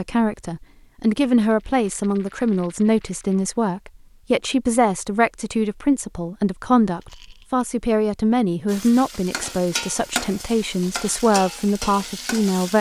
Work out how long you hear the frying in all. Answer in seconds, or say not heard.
4 s.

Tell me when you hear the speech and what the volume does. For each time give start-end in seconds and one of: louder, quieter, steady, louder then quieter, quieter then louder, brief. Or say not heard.
0.0-12.7 steady.